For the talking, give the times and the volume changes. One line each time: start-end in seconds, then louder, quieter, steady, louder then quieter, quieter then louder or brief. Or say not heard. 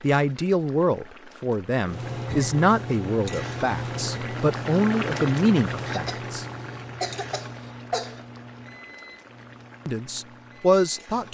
0.0-6.5 steady
9.8-11.2 brief.